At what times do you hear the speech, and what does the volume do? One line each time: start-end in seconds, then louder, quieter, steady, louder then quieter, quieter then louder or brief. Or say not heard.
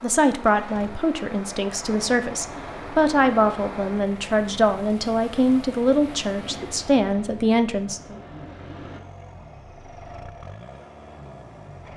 0.0-8.2 steady.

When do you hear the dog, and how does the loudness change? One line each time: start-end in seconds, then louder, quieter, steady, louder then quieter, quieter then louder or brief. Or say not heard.
not heard.